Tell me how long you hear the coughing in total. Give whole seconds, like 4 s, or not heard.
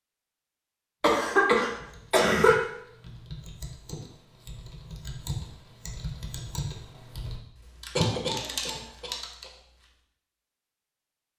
3 s.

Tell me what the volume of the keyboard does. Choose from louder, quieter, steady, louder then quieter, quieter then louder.
louder.